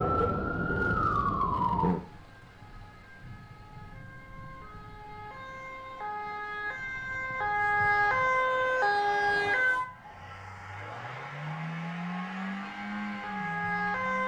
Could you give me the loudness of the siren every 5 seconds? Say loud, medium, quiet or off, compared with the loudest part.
loud, loud, medium.